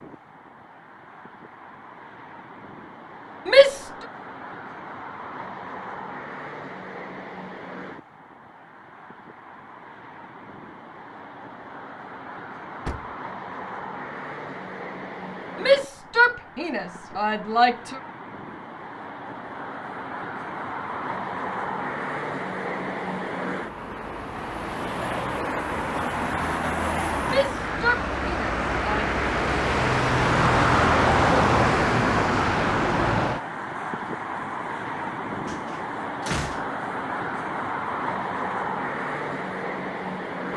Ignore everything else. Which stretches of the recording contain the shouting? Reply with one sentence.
The shouting can be heard from 3.5 to 3.9 s, from 15.6 to 18.0 s and from 27.2 to 29.1 s.